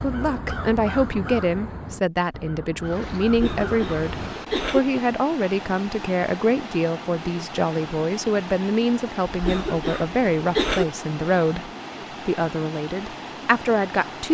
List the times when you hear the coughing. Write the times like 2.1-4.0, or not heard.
3.2-4.8, 9.2-10.8.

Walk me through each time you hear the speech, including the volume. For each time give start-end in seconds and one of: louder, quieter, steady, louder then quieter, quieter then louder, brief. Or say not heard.
0.0-14.2 steady.